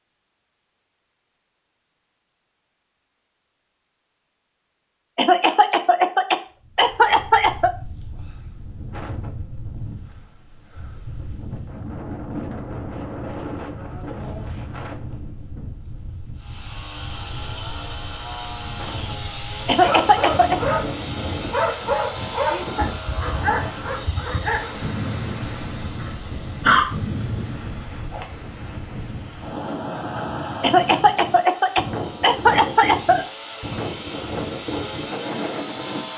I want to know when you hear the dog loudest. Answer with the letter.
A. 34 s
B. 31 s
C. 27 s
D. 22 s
C.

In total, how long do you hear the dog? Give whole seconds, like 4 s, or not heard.
8 s.